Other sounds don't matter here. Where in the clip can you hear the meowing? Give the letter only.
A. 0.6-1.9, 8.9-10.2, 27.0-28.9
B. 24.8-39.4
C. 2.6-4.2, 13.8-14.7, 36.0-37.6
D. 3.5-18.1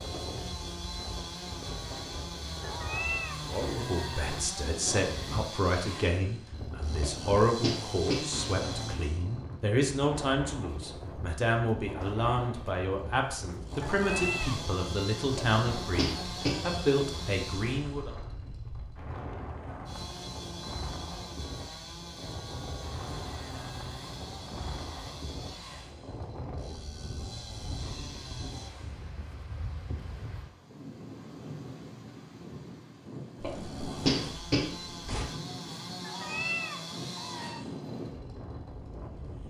C.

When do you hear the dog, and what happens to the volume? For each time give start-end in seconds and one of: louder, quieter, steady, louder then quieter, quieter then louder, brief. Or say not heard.
not heard.